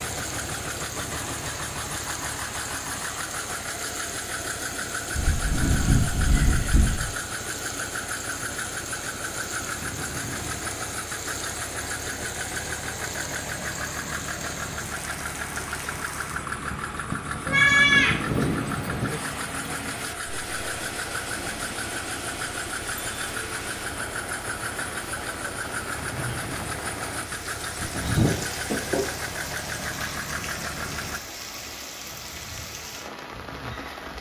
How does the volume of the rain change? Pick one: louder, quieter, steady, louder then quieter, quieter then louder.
steady.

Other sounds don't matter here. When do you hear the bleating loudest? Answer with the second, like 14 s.
18 s.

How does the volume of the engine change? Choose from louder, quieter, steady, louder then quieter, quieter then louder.
steady.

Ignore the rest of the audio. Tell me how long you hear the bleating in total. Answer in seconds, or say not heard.
5 s.